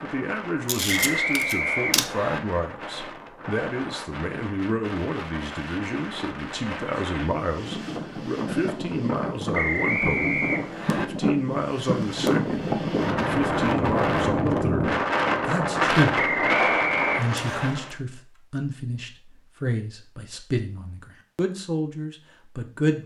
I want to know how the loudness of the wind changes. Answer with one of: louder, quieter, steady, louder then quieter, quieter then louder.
louder.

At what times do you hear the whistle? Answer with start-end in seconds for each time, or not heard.
0.8-2.4, 9.5-11.1, 16.1-17.7.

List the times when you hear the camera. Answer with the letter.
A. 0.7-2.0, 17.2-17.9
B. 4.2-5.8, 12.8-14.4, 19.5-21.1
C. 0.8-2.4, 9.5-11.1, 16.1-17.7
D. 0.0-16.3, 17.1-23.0
A.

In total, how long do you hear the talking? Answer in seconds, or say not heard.
22 s.